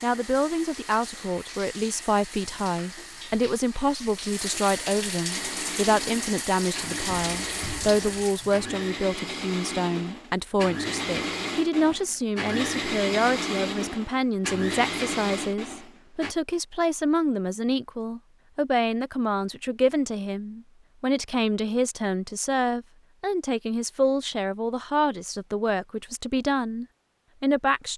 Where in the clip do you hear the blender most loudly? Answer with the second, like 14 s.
13 s.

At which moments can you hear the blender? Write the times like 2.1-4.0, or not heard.
5.3-16.4.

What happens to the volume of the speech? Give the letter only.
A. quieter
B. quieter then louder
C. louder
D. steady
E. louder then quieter
D.